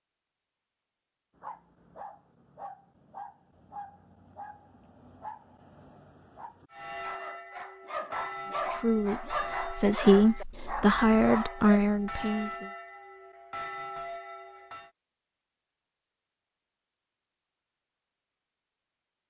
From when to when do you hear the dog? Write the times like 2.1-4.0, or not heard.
1.4-11.8.